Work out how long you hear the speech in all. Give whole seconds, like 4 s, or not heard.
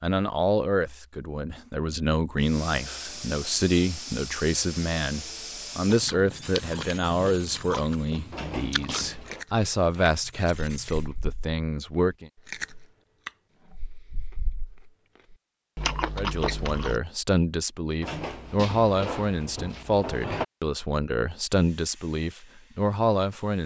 20 s.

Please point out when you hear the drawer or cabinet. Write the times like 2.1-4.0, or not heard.
8.3-9.4, 18.0-20.4.